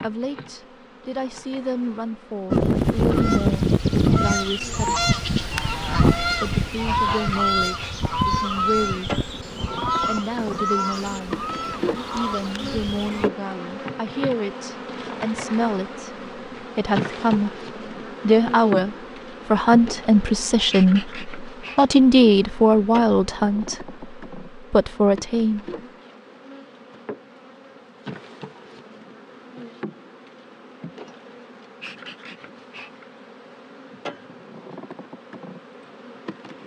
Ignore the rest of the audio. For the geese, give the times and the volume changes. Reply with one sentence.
You can hear the geese from 2.5 to 13.3 s, getting quieter.